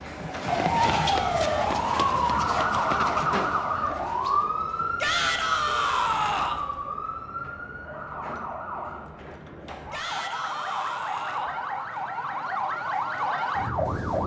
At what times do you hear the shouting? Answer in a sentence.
The shouting can be heard from 0.7 to 2.3 s, from 5.0 to 6.6 s and from 9.9 to 11.6 s.